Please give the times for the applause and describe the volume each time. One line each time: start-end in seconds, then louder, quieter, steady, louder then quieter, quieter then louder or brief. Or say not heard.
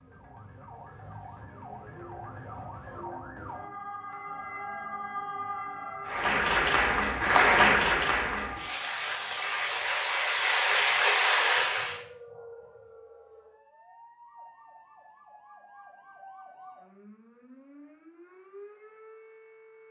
6.0-12.0 quieter then louder.